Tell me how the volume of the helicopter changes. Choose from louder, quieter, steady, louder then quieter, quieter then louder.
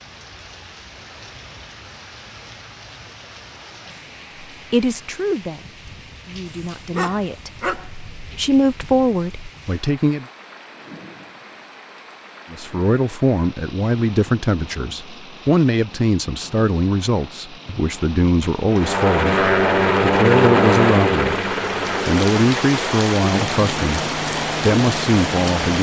quieter.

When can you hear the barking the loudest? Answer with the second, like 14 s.
8 s.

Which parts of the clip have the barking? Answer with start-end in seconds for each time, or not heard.
6.5-8.6.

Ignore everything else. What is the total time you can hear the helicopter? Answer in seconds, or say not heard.
7 s.